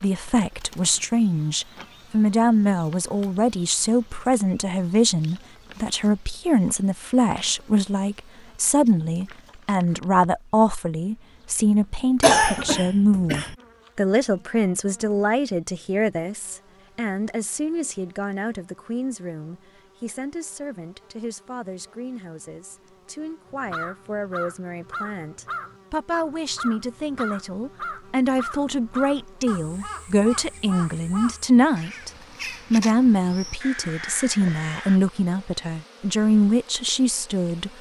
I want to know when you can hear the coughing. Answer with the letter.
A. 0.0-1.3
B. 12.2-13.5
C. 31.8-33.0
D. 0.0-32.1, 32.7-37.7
B.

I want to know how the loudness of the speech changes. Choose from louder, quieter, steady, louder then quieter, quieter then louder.
quieter then louder.